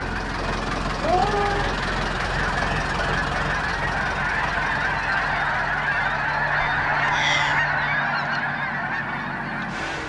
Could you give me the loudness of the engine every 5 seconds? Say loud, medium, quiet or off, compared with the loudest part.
loud, medium.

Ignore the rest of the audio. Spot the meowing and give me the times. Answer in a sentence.
You can hear the meowing from 1.0 to 1.8 s and from 6.8 to 7.6 s.